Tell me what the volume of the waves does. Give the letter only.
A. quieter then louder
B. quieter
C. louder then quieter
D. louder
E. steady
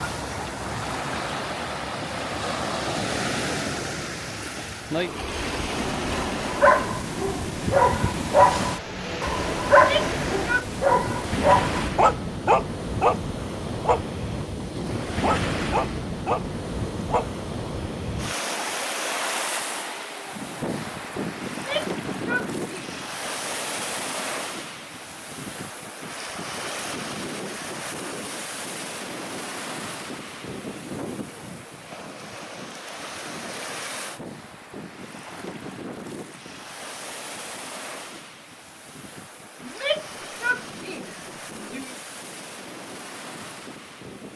B.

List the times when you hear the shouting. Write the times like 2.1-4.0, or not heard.
9.7-10.7, 21.5-22.9, 39.6-42.0.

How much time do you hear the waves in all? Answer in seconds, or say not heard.
44 s.